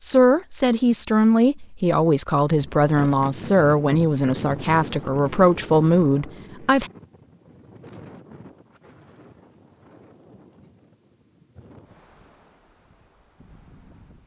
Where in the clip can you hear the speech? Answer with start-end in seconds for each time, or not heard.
0.0-6.9.